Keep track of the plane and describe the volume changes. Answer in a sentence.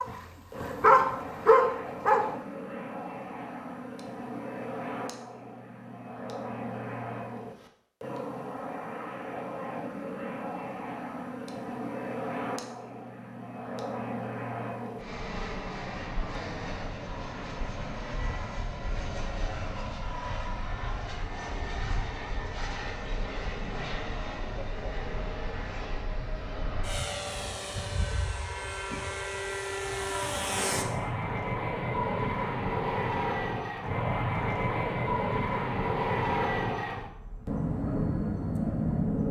The volume of the plane goes up.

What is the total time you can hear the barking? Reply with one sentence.
The barking can be heard for 2 seconds in total.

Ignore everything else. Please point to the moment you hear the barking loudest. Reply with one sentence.
The volume of the barking peaks at 1 second.